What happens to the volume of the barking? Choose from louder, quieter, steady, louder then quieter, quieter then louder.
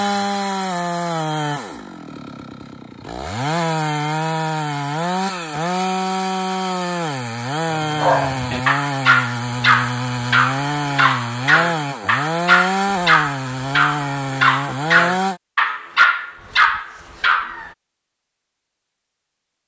steady.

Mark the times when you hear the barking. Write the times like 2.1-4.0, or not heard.
7.7-17.7.